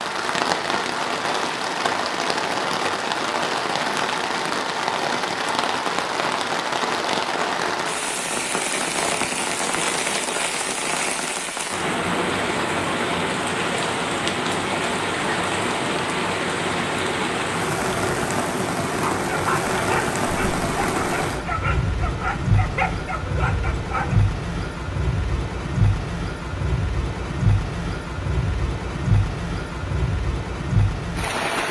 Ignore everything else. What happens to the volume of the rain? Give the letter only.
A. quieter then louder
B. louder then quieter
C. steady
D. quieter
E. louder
C.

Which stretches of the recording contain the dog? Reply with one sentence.
You can hear the dog from 18.9 to 24.2 s.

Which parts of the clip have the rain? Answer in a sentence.
You can hear the rain from 0.0 to 31.6 s.